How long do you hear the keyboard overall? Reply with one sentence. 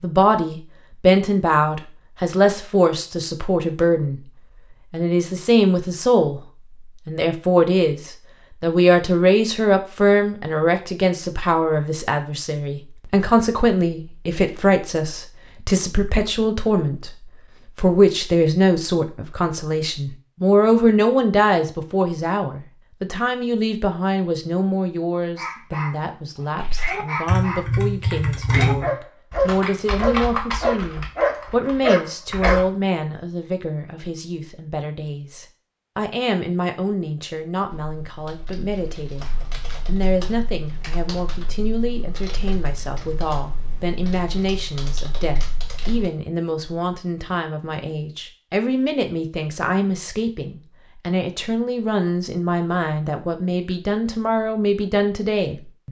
You can hear the keyboard for 14 seconds altogether.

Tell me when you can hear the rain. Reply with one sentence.
You can't hear the rain here.